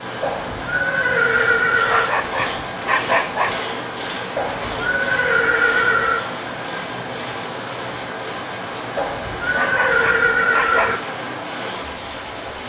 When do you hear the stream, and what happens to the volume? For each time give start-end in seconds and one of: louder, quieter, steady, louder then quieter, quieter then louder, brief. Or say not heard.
0.0-12.6 steady.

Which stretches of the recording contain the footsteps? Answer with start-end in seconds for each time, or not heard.
not heard.